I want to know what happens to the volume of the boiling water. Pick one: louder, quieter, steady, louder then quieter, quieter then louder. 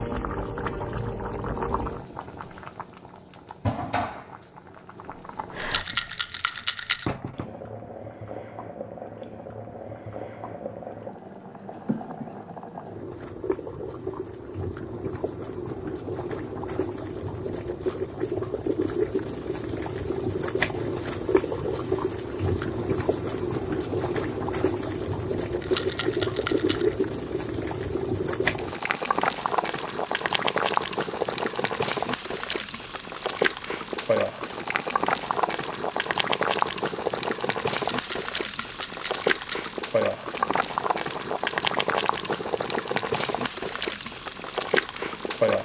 louder.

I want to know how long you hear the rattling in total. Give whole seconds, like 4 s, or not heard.
5 s.